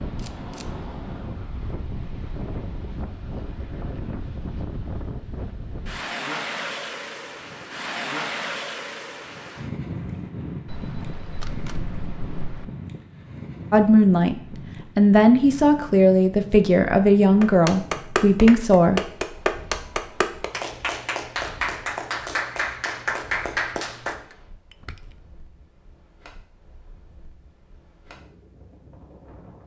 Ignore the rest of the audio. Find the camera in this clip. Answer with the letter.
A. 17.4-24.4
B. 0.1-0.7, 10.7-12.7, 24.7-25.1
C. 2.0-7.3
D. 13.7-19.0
B.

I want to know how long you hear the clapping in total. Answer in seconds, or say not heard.
7 s.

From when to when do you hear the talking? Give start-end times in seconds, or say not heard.
13.7-19.0.